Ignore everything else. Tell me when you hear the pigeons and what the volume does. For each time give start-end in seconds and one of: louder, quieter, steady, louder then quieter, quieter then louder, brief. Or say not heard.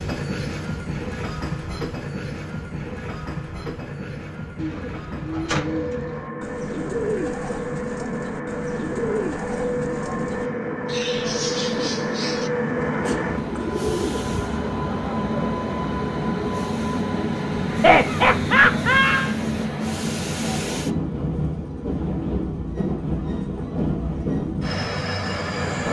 4.5-14.6 steady.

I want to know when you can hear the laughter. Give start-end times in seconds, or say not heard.
17.7-19.4.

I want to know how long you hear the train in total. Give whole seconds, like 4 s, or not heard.
26 s.